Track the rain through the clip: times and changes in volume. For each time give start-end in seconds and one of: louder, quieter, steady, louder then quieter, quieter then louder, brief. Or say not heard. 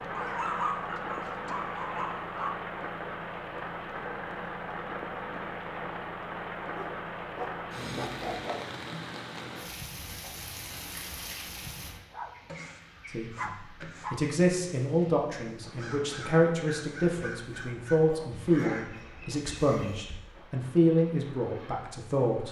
0.0-22.4 quieter.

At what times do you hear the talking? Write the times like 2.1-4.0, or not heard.
13.1-22.4.